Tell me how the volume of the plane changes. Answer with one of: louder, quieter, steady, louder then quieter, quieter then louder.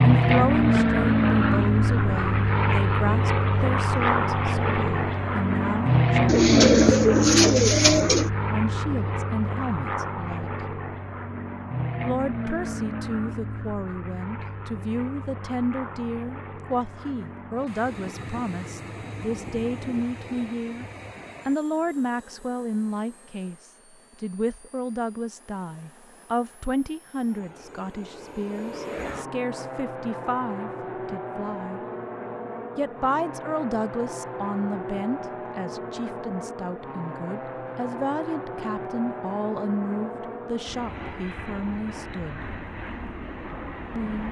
quieter then louder.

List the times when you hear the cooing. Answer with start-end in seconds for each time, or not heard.
6.2-8.3.